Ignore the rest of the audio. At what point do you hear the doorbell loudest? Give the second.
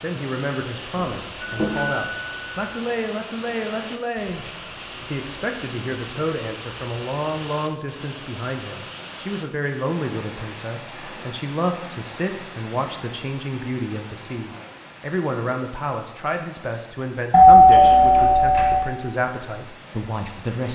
18 s.